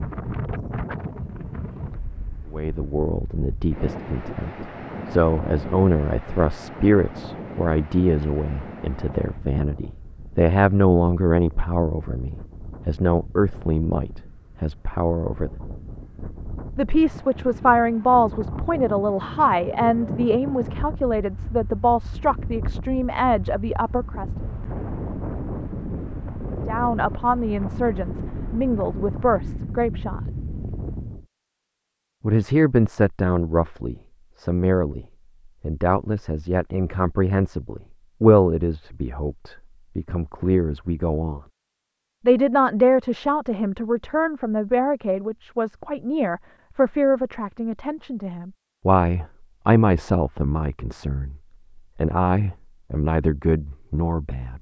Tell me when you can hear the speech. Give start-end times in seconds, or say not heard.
2.5-15.5, 16.8-24.2, 26.6-30.2, 32.2-41.4, 42.2-51.4, 52.0-54.5.